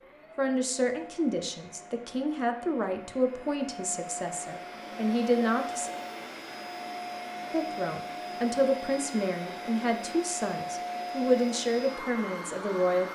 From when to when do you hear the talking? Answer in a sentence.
The talking can be heard from 0.3 to 5.9 s and from 7.5 to 13.1 s.